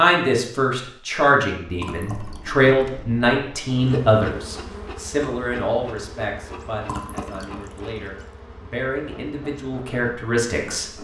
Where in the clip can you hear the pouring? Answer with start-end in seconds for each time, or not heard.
1.8-2.5, 6.8-8.1.